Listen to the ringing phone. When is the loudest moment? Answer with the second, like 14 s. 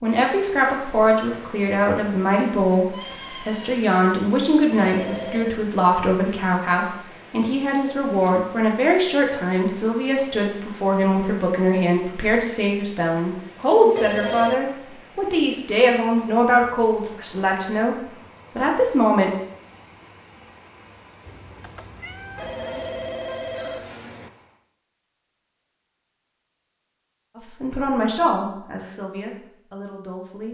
14 s.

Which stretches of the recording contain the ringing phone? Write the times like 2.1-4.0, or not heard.
4.8-5.6, 13.9-14.6, 22.4-24.3.